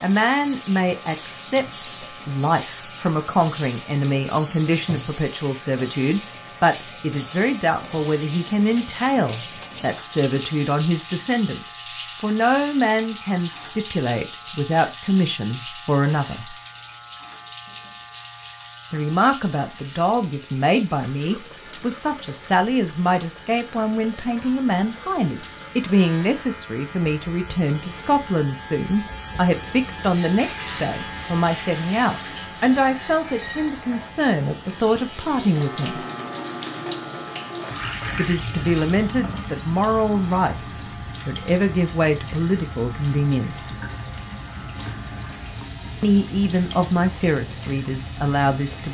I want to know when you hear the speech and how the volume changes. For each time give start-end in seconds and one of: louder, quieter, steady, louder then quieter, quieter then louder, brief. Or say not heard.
0.0-16.6 steady
18.9-36.0 steady
38.1-43.7 quieter then louder
46.0-48.8 brief.